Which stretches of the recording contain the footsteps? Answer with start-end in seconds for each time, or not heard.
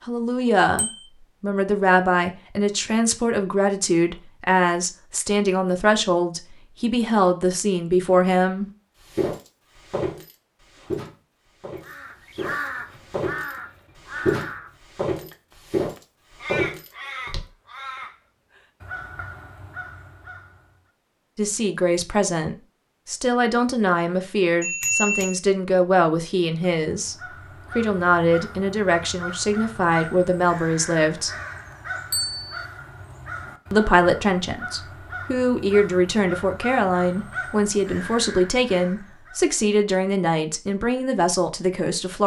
9.1-17.4.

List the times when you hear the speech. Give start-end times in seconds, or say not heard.
0.1-8.7, 21.4-27.1, 27.8-31.4, 33.7-42.2.